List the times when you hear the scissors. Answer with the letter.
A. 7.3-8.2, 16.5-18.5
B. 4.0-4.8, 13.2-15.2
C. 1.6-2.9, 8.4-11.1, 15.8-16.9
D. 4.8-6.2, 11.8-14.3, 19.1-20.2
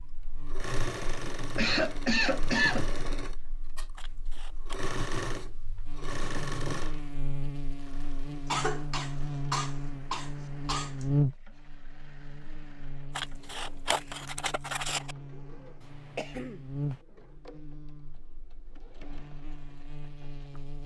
B.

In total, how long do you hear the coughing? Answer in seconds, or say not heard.
5 s.